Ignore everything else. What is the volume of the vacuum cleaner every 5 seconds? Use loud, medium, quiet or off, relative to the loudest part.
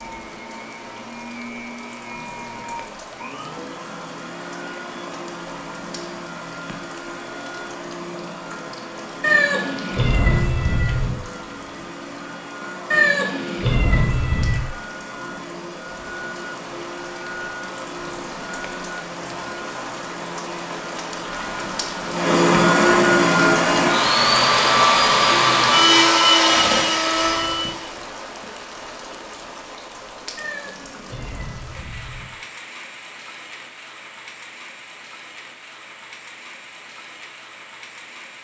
quiet, quiet, quiet, quiet, loud, loud, off, off.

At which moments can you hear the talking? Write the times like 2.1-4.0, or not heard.
not heard.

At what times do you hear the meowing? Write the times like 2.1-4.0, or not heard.
9.2-11.2, 12.9-14.7, 30.4-32.2.